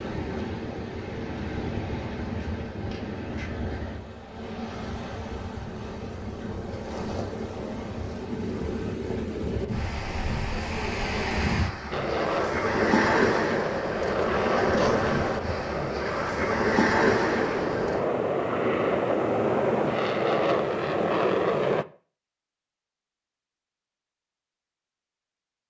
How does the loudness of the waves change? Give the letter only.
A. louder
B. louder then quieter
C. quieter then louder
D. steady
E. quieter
A.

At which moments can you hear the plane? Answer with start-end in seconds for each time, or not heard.
11.9-21.9.